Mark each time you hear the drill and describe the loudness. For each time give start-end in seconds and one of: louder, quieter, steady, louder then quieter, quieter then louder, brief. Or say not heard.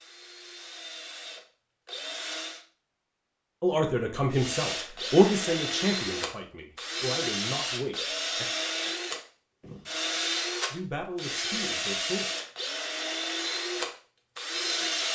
0.0-2.6 brief
4.3-15.0 steady.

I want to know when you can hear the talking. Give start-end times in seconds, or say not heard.
3.6-8.4, 10.7-12.2.